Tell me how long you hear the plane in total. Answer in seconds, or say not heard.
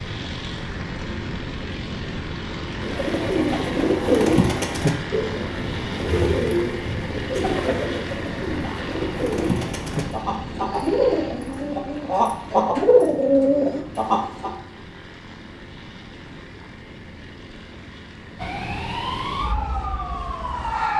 21 s.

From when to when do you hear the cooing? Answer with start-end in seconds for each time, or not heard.
2.8-14.5.